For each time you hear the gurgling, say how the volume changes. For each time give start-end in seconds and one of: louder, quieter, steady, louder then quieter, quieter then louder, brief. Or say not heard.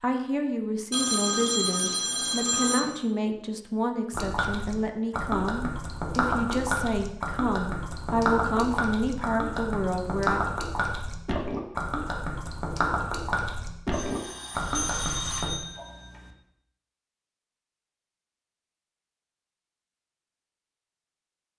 4.1-15.6 steady.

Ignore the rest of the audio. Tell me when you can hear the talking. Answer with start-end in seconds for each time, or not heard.
0.0-10.4.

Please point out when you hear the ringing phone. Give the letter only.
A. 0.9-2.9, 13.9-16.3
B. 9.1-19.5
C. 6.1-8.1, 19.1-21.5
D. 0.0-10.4
A.